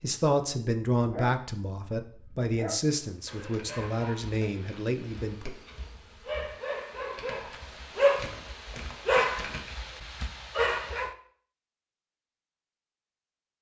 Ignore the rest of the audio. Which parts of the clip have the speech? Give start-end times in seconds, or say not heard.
0.0-5.5.